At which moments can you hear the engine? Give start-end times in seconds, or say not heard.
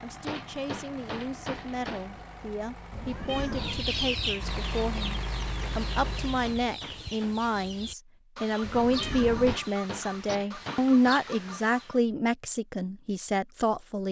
0.0-6.6.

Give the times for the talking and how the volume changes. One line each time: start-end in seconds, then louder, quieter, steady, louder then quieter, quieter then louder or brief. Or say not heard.
0.0-14.0 louder.